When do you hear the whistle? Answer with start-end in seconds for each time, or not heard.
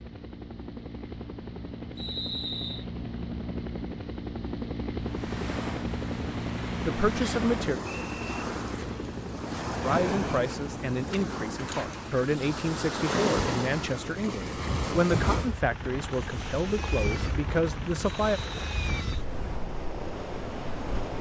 1.9-2.9, 7.2-8.4, 18.2-19.0.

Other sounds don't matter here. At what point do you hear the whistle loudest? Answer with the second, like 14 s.
2 s.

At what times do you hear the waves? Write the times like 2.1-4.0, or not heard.
5.0-21.1.